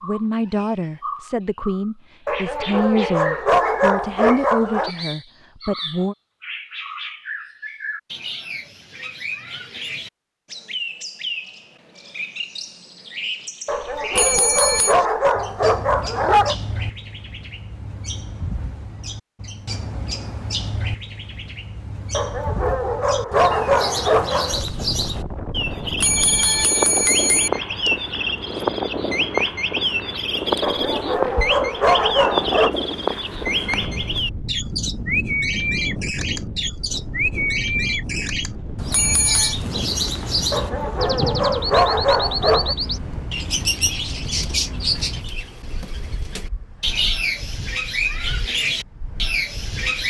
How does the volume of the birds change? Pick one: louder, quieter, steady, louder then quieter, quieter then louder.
louder.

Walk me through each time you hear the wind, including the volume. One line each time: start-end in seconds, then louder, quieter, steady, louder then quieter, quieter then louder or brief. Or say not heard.
23.6-50.0 quieter.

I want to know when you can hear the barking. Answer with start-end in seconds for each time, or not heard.
2.2-4.9, 13.7-16.6, 22.1-24.4, 30.6-32.7, 40.5-42.8.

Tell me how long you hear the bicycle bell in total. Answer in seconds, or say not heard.
3 s.